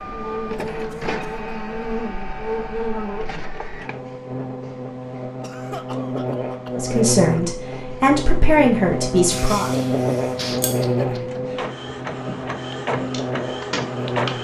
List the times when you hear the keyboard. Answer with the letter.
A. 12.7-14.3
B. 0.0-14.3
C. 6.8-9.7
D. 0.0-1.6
A.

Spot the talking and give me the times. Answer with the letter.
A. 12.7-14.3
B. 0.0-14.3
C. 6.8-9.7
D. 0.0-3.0
C.